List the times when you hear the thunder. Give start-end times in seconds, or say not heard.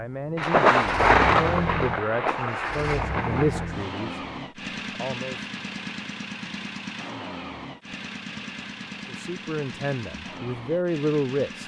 0.3-3.7.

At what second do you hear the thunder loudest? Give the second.
1 s.